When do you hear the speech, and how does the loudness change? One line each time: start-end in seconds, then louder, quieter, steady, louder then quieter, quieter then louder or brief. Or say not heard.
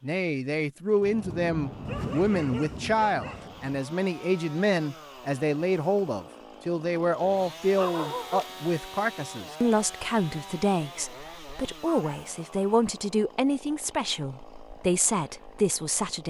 0.0-16.2 steady.